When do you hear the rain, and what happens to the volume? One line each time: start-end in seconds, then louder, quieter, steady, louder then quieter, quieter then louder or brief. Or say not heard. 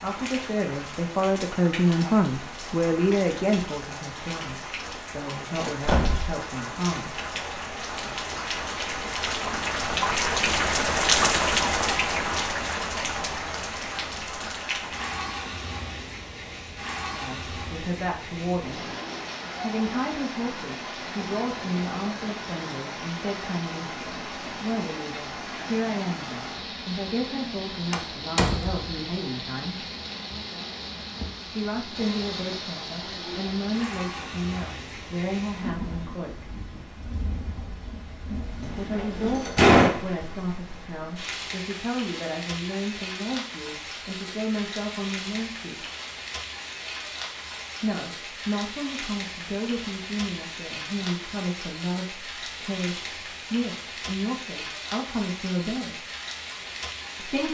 0.0-57.4 quieter.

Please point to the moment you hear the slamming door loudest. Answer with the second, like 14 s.
40 s.